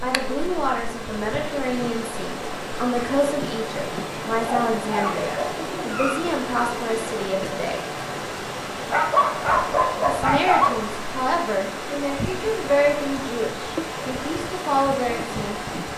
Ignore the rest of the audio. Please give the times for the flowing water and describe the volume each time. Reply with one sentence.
You can hear the flowing water from 0.0 to 15.9 s, at a steady volume.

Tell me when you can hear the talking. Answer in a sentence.
The talking can be heard from 0.0 to 7.8 s and from 10.1 to 15.7 s.